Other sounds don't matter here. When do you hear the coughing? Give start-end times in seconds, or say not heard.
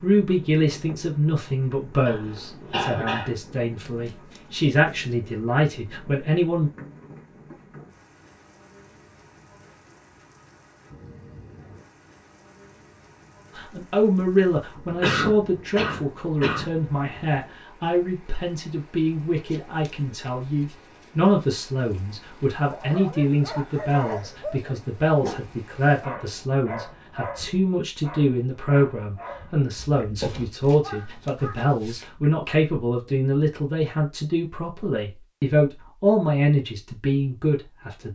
2.0-3.4, 15.0-16.7, 29.8-30.5.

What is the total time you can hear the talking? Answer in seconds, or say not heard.
31 s.